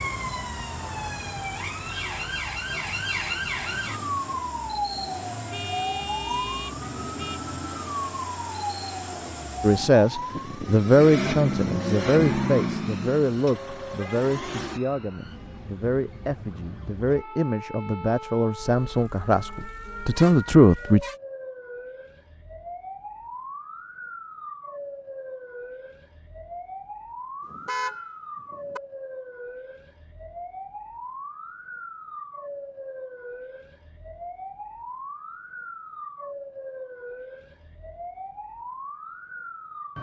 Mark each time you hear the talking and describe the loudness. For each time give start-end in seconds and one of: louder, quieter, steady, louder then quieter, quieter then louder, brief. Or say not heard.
9.6-21.0 quieter then louder.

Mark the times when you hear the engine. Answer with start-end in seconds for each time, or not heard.
0.0-14.8.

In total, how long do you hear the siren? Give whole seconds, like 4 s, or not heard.
40 s.